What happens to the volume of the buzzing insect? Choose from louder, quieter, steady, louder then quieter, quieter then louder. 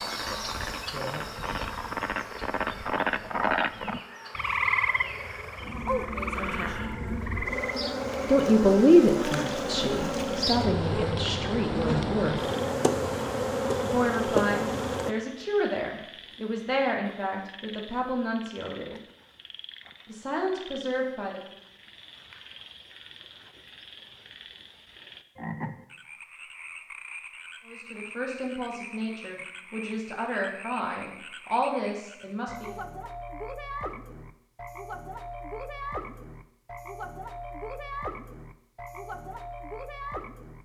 louder.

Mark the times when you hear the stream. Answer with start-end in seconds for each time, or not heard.
not heard.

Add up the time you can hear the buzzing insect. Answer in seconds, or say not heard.
15 s.